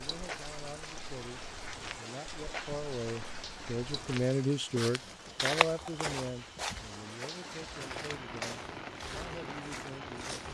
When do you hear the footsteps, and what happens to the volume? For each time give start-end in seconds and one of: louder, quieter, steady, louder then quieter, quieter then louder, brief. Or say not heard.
0.1-10.4 louder then quieter.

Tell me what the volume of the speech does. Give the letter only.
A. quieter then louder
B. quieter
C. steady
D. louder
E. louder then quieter
E.